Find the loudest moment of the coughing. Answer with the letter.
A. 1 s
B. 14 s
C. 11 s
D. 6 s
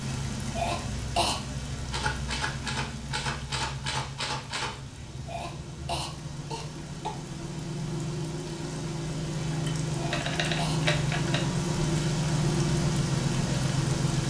A.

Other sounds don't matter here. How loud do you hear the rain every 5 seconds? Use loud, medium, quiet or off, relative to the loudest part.
medium, medium, loud.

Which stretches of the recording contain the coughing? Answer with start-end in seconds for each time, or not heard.
0.5-1.4, 5.2-7.2, 9.9-10.8.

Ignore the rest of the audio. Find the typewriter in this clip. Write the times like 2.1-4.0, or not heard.
1.9-4.8, 9.5-11.4.